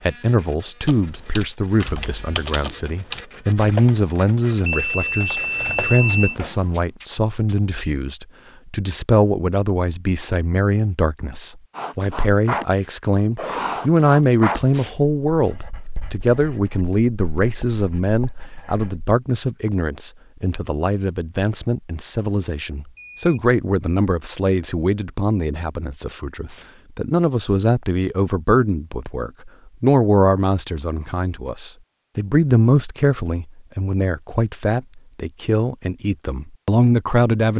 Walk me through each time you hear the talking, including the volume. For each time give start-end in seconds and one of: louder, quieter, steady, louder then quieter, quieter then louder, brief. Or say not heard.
0.1-37.5 steady.